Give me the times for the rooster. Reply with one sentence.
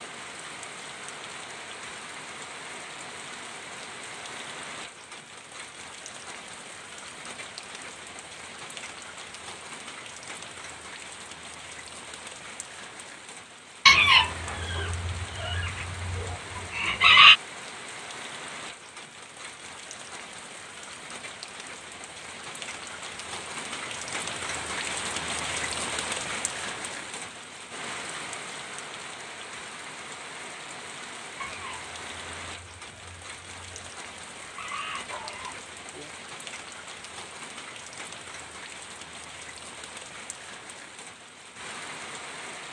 The rooster can be heard from 13.8 to 17.4 s and from 31.4 to 36.1 s.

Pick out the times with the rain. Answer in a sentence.
You can hear the rain from 0.0 to 42.6 s.